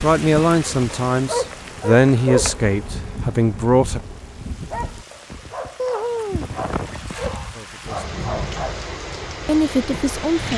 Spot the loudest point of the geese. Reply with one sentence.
The loudest moment of the geese is at 6 seconds.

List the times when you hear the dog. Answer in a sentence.
The dog can be heard from 0.0 to 8.9 s.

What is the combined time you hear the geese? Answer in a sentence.
You can hear the geese for 2 seconds altogether.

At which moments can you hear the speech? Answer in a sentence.
You can hear the speech from 0.0 to 4.0 s, from 7.5 to 8.5 s and from 9.4 to 10.5 s.